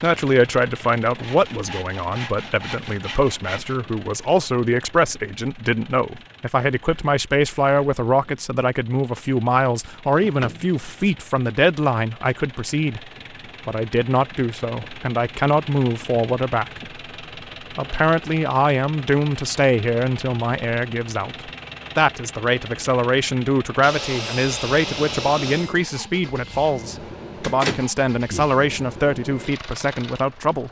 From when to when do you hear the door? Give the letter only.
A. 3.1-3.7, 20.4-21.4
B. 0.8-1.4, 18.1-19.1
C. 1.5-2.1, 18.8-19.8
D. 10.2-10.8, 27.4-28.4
D.